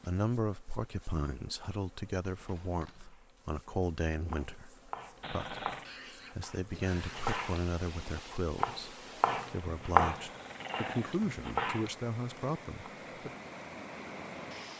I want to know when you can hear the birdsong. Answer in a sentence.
The birdsong can't be heard in this clip.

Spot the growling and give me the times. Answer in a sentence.
You can hear the growling from 5.2 to 5.8 s and from 10.1 to 11.2 s.